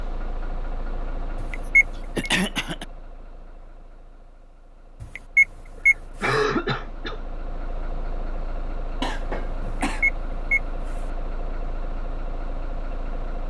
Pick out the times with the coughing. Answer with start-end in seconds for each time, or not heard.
1.6-2.9, 6.2-7.2, 9.0-10.0.